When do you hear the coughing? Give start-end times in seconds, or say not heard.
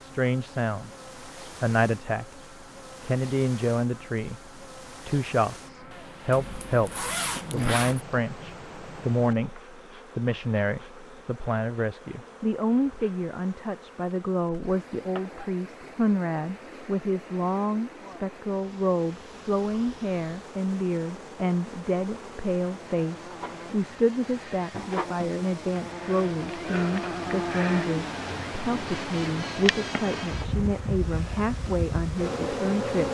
not heard.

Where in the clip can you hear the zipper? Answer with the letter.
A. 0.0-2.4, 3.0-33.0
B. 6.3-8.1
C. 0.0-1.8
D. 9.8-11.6
B.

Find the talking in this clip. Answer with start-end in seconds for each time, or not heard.
0.0-2.4, 3.0-33.0.